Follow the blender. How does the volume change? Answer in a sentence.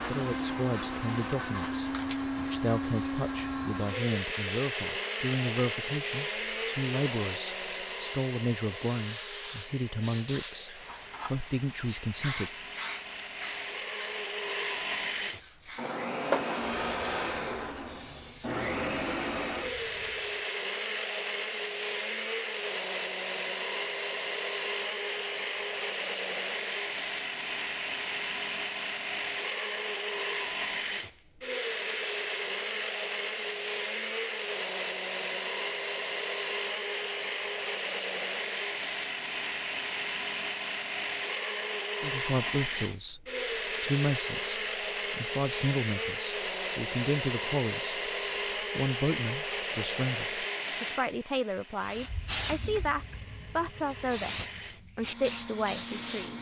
The volume of the blender stays about the same.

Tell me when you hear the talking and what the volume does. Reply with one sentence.
You can hear the talking from 0.1 to 12.5 s, at a steady volume; and from 42.0 to 56.3 s, at a steady volume.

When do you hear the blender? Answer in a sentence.
You can hear the blender from 0.0 to 56.3 s.